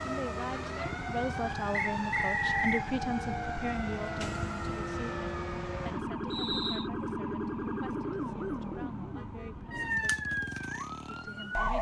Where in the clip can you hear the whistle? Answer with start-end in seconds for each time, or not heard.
1.7-2.9, 6.3-6.9.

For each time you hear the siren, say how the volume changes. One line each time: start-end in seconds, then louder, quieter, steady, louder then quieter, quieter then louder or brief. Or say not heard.
0.0-11.7 steady.